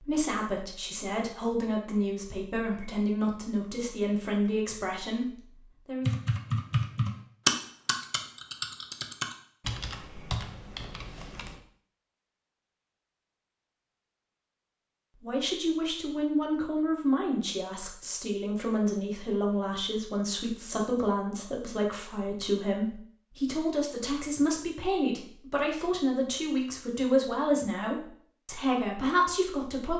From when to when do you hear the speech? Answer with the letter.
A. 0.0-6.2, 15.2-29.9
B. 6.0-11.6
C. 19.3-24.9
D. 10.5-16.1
A.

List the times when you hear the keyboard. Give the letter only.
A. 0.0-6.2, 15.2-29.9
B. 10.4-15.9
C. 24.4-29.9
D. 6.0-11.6
D.